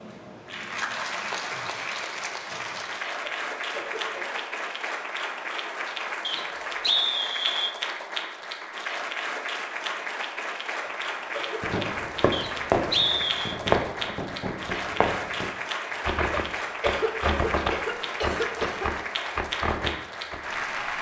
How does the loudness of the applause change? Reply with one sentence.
The volume of the applause stays about the same.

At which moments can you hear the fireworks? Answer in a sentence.
The fireworks can be heard from 11.6 to 20.4 s.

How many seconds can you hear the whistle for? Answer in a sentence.
You can hear the whistle for 3 seconds altogether.